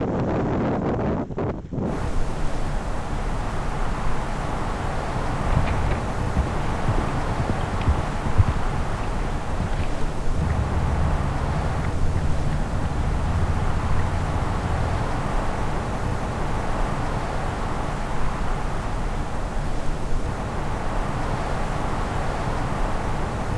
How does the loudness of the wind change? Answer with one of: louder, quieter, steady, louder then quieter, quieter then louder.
steady.